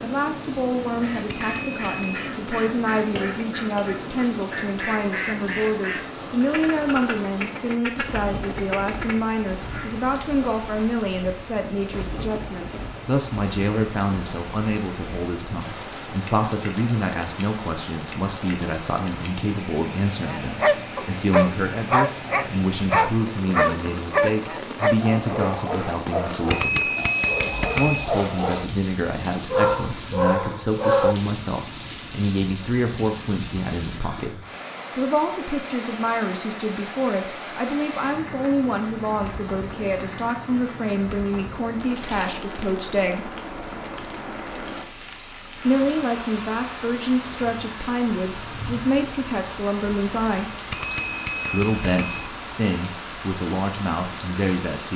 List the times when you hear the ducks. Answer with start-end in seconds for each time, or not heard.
0.8-9.9.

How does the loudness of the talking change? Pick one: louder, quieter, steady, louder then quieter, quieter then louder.
steady.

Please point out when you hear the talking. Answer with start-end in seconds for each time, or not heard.
0.0-26.9, 27.8-43.3, 45.6-50.5, 51.5-54.9.